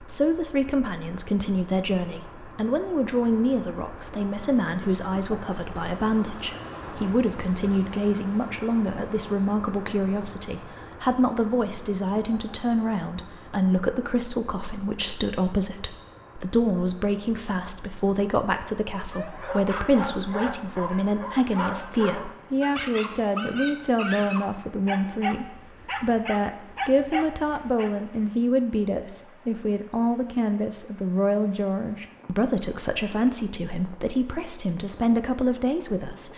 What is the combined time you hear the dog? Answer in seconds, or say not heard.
9 s.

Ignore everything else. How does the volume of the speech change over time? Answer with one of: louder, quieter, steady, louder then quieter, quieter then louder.
steady.